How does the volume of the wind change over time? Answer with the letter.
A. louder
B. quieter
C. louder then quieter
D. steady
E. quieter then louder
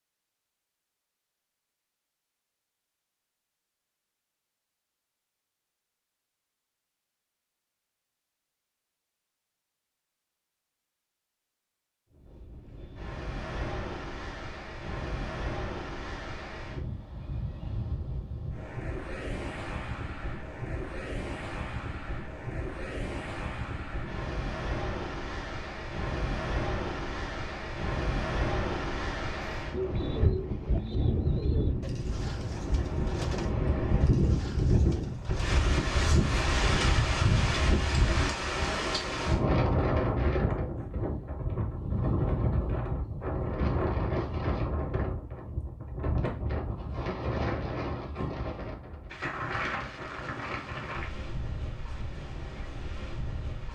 C.